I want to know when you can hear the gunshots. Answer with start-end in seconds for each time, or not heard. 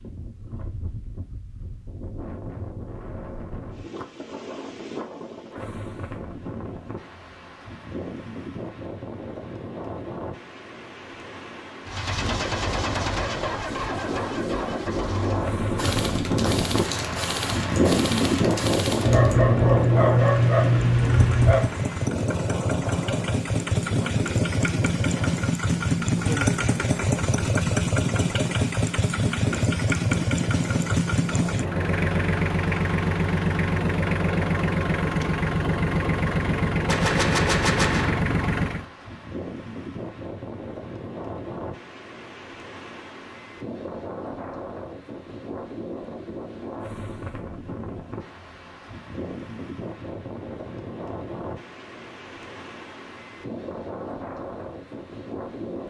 15.8-19.4, 36.9-38.2.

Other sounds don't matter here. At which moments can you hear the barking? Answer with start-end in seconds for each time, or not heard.
19.1-21.8.